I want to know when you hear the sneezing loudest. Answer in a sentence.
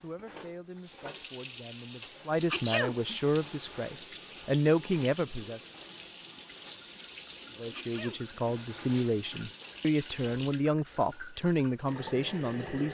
The loudest moment of the sneezing is at 3 seconds.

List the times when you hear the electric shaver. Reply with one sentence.
The electric shaver can't be heard in this clip.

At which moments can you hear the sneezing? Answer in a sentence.
The sneezing can be heard from 2.5 to 3.2 s and from 7.7 to 8.4 s.